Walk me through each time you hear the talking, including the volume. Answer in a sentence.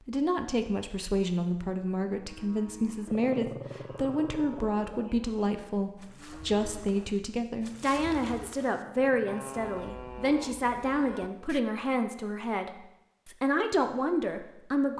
The talking can be heard from 0.1 to 14.9 s, at a steady volume.